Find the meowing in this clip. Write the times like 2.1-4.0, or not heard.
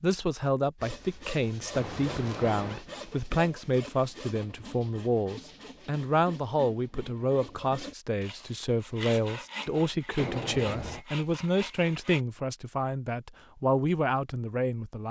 1.7-2.9, 10.2-11.1.